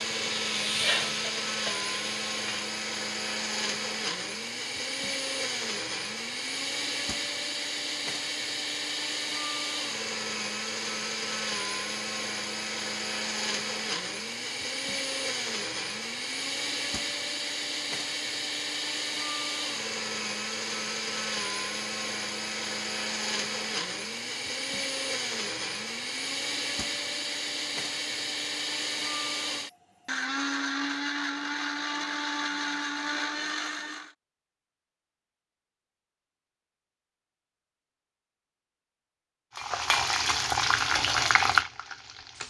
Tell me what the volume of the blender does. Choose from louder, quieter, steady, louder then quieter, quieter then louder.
steady.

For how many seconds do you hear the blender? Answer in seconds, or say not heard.
34 s.